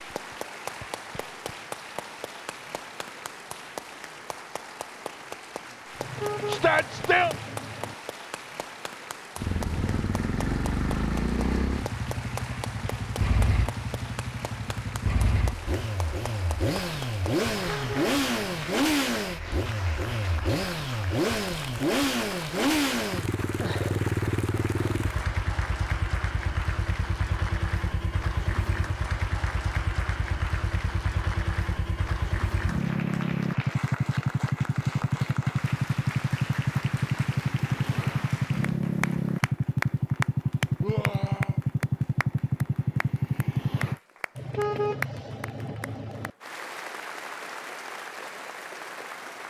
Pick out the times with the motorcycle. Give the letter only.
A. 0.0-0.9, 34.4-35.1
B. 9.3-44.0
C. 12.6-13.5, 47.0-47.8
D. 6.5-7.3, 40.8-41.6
B.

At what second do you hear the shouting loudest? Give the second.
7 s.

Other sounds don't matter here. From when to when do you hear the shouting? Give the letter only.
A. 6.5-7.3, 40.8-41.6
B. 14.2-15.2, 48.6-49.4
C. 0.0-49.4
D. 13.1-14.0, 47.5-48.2
A.